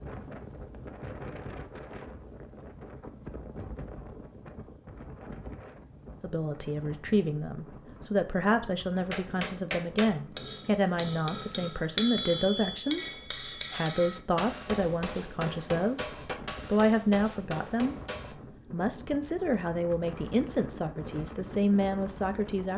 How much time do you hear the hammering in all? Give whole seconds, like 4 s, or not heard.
9 s.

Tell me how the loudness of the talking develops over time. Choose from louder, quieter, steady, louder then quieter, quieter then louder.
steady.